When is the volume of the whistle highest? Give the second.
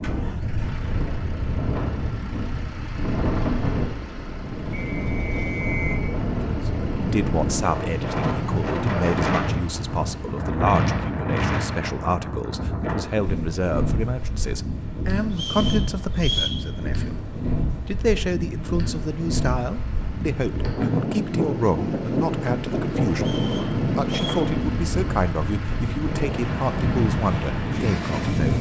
16 s.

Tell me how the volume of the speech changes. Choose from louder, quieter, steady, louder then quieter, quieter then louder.
steady.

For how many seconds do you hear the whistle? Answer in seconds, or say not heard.
4 s.